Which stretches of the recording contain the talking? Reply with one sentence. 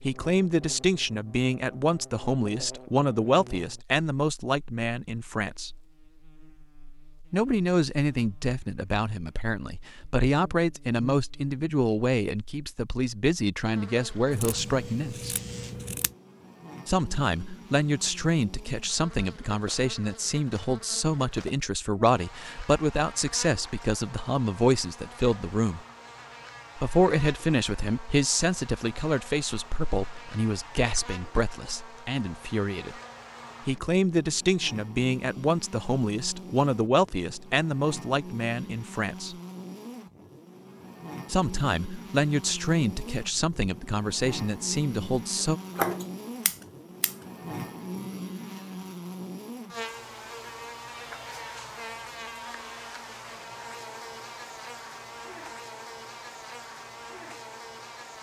The talking can be heard from 0.0 to 5.8 s, from 7.3 to 15.3 s, from 16.9 to 25.8 s, from 26.8 to 33.0 s, from 33.6 to 39.4 s and from 41.3 to 45.6 s.